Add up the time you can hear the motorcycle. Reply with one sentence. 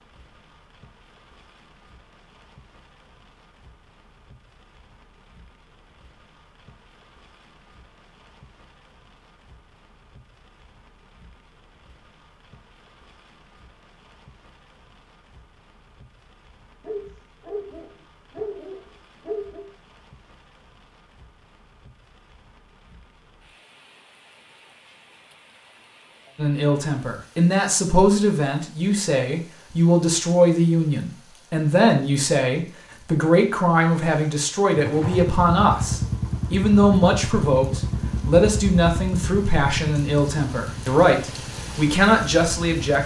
You can hear the motorcycle for 8 seconds altogether.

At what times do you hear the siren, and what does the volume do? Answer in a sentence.
The siren can't be heard in this clip.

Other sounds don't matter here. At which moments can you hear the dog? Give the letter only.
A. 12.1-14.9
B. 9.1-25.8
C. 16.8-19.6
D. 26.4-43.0
C.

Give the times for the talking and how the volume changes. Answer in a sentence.
You can hear the talking from 26.4 to 43.0 s, at a steady volume.